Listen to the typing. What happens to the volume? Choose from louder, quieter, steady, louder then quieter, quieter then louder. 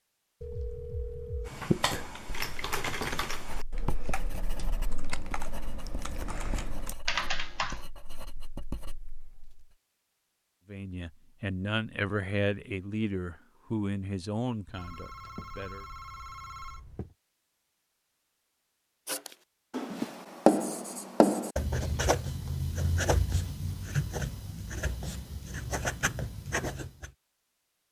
quieter then louder.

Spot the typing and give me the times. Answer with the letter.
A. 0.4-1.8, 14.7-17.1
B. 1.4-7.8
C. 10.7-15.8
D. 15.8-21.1
B.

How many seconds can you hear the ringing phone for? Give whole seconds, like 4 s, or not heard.
4 s.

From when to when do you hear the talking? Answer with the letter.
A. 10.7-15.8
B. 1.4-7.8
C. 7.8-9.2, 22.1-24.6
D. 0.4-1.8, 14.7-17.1
A.